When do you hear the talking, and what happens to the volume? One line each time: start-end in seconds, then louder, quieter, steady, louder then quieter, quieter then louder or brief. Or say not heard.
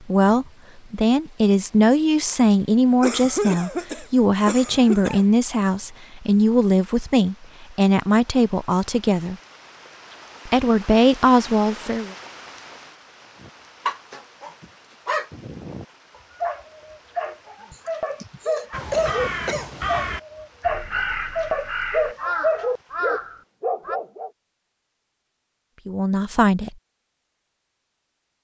0.1-9.3 steady
10.4-12.2 brief
25.9-26.7 brief.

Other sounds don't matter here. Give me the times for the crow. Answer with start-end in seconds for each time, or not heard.
18.7-24.0.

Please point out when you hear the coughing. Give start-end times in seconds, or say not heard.
3.0-5.2, 17.7-19.9.